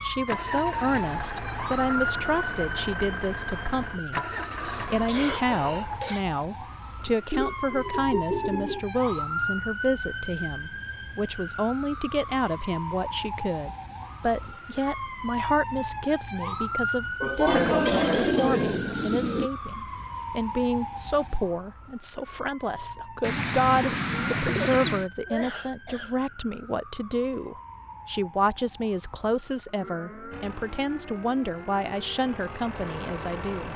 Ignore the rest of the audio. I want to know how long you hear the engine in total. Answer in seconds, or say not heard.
9 s.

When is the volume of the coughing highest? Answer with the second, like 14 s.
18 s.